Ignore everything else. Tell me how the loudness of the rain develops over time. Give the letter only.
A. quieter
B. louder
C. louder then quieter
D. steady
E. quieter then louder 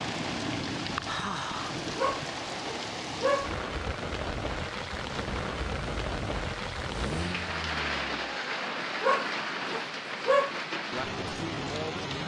D.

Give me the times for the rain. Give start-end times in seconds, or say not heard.
0.0-12.2.